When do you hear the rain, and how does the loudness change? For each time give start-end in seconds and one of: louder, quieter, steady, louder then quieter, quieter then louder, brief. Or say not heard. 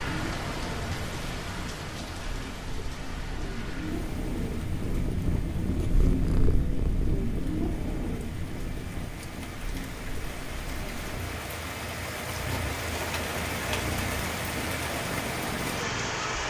0.0-16.4 quieter then louder.